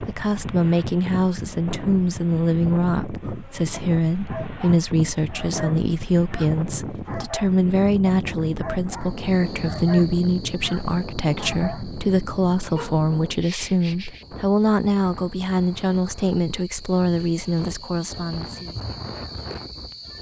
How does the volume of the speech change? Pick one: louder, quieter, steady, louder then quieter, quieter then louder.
steady.